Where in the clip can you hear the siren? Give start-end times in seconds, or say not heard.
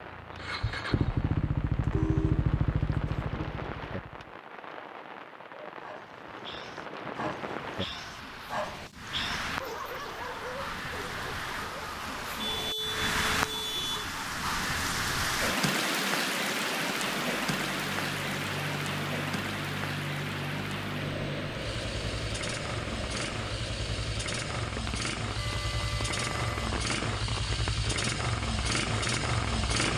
not heard.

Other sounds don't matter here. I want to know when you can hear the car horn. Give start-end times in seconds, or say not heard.
1.8-2.5, 12.2-14.1, 25.4-26.6.